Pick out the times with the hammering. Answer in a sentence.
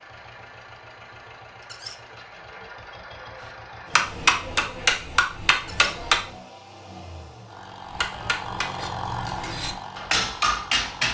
The hammering can be heard from 3.9 to 6.2 s and from 7.8 to 11.0 s.